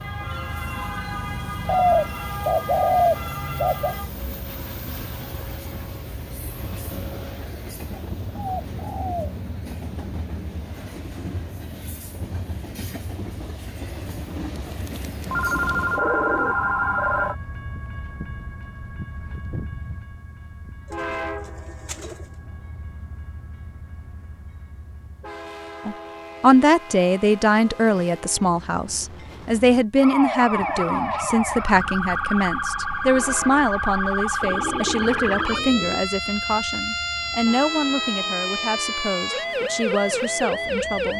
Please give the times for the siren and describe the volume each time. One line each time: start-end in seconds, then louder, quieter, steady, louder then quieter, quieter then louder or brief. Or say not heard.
0.0-4.1 steady
29.9-41.1 steady.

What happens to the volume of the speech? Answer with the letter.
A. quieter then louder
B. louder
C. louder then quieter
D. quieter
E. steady
D.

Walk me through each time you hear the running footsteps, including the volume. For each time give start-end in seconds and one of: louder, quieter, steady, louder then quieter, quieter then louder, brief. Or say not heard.
not heard.